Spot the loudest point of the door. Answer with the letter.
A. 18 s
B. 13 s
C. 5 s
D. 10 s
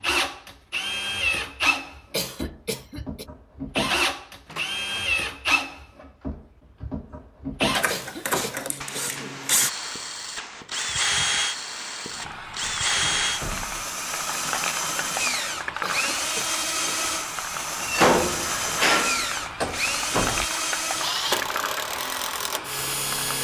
A.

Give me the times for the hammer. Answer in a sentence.
You can't hear the hammer here.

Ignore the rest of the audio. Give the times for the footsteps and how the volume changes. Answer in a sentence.
The footsteps can't be heard in this clip.